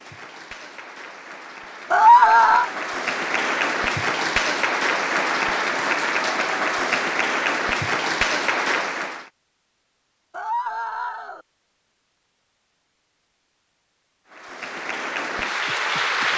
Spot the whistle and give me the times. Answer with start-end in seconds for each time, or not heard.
not heard.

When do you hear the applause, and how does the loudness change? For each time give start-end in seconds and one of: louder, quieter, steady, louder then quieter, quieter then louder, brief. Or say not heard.
0.0-9.3 louder
14.3-16.3 brief.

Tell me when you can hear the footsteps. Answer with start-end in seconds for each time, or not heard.
not heard.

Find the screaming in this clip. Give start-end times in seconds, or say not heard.
1.9-2.7, 10.3-11.4.